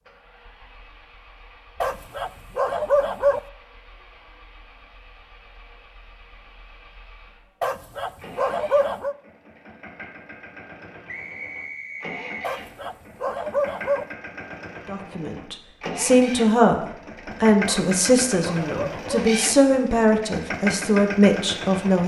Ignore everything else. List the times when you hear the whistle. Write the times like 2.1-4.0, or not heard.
11.1-12.6.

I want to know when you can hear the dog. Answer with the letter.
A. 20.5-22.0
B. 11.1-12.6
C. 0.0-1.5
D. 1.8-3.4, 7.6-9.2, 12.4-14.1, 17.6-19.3
D.